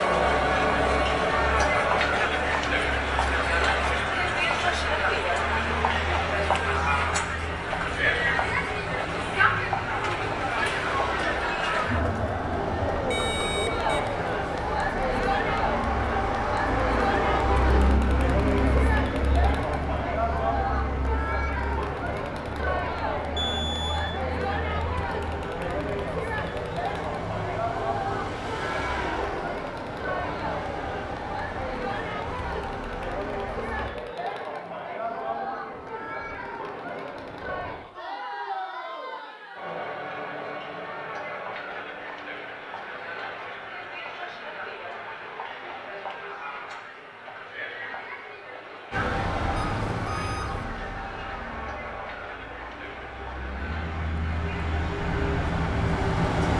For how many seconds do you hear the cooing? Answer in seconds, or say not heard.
not heard.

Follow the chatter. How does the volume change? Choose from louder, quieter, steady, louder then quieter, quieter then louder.
quieter.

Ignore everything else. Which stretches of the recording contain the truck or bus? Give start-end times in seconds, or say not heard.
0.2-34.0, 48.9-56.5.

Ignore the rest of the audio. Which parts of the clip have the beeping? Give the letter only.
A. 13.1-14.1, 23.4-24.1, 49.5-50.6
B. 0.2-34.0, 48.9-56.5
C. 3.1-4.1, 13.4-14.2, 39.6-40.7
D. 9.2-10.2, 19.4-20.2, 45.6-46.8
A.